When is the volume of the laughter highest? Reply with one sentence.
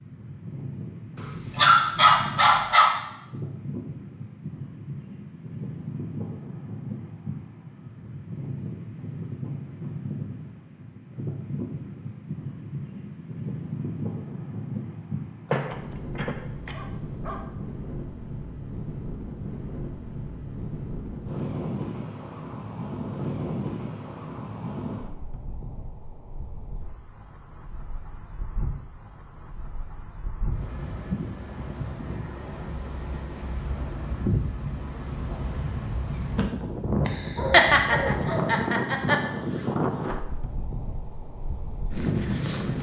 The loudest moment of the laughter is at 38 seconds.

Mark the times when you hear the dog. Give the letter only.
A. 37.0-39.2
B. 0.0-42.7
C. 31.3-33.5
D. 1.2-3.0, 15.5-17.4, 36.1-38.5
D.